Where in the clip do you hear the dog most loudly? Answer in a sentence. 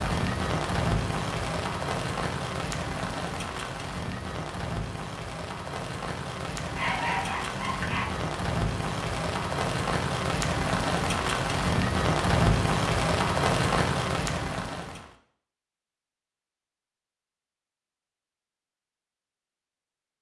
The volume of the dog peaks at 7 seconds.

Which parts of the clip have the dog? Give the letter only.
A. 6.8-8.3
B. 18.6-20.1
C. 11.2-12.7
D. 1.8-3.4
A.